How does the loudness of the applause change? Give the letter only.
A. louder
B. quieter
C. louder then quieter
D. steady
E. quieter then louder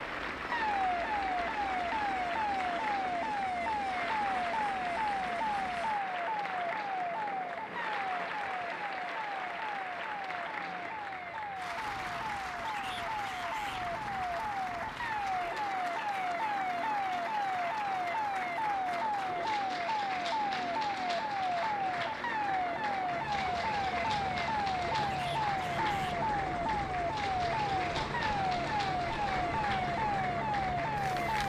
D.